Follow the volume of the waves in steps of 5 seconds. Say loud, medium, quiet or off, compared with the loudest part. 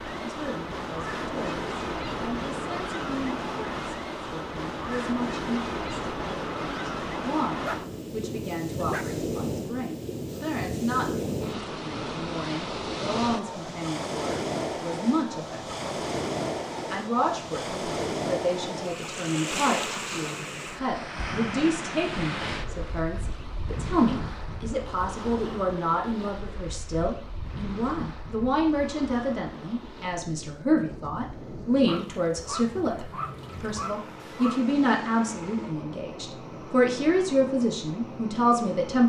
loud, loud, loud, loud, loud, medium, medium, medium.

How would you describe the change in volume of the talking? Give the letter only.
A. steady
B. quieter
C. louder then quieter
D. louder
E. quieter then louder
D.